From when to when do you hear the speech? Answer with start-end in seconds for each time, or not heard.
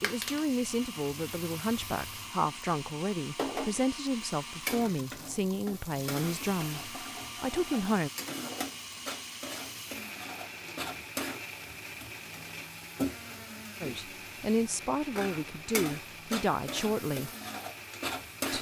0.0-8.1, 13.8-17.3.